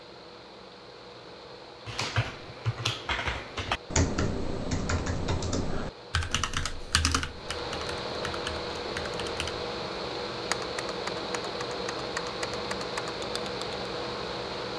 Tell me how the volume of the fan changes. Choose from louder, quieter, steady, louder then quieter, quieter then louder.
louder.